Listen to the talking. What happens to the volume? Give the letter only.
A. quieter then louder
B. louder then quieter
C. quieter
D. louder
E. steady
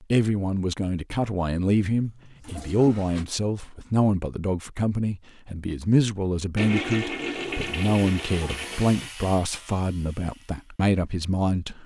E.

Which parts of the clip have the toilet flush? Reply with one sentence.
The toilet flush can be heard from 2.0 to 3.2 s and from 6.5 to 9.1 s.